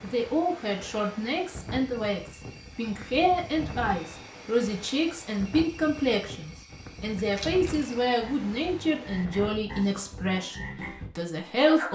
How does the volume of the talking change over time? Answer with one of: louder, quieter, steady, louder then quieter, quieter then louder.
steady.